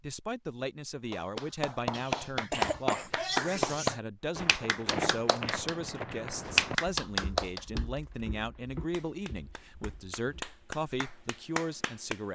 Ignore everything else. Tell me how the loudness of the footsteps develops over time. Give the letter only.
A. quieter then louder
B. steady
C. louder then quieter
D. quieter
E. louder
D.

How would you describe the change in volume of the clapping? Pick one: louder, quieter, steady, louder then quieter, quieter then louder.
quieter then louder.